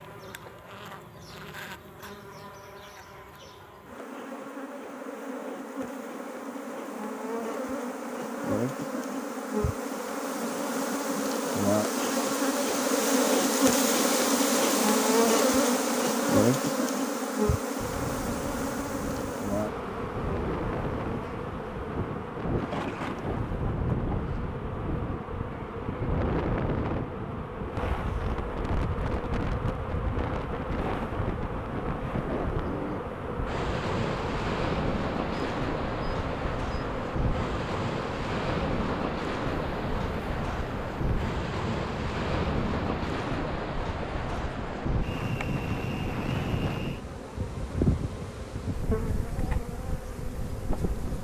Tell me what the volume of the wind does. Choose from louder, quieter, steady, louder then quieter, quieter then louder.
steady.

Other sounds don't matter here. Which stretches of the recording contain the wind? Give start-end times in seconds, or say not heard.
17.8-51.1.